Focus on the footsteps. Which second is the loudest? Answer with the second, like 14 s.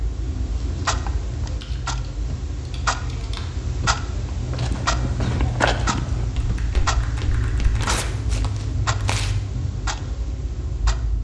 6 s.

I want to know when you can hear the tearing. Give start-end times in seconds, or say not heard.
7.7-9.3.